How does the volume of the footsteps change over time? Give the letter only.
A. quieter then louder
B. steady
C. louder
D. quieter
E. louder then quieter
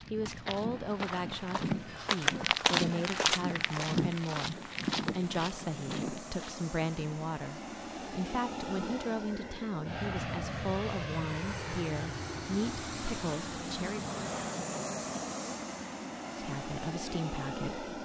E.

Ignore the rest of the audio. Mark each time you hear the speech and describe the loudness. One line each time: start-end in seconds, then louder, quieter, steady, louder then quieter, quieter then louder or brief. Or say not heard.
0.1-14.1 steady
16.4-17.9 brief.